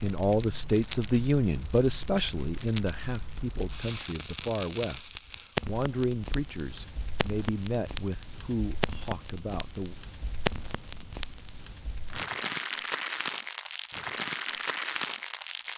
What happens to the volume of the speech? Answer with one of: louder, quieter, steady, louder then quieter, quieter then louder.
quieter.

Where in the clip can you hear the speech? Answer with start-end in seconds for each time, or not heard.
0.0-9.9.